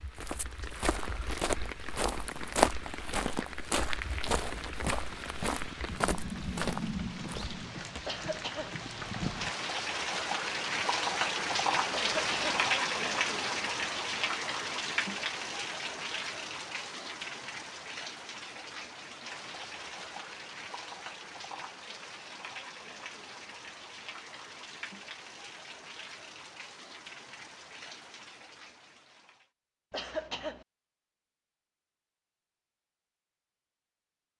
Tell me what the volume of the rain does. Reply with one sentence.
The loudness of the rain goes up, then down.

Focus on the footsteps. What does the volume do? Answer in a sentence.
The loudness of the footsteps goes up, then down.